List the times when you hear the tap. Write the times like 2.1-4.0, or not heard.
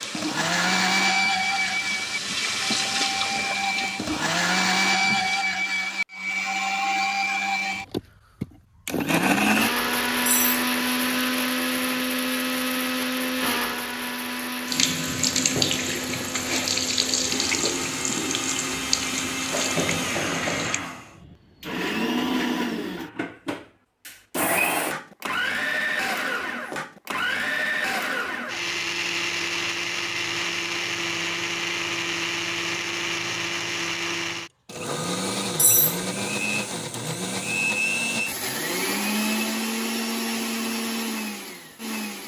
0.0-5.5, 14.7-20.8.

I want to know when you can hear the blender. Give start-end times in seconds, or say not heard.
0.0-42.2.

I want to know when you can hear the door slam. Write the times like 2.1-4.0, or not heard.
not heard.